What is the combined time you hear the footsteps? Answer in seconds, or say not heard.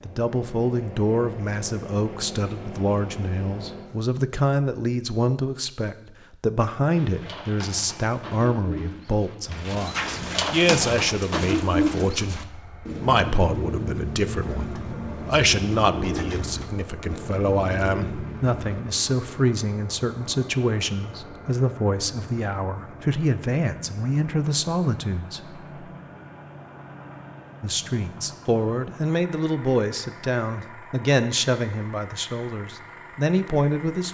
not heard.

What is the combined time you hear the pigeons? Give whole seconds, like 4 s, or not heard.
12 s.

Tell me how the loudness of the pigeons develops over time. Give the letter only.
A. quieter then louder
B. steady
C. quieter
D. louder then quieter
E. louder
D.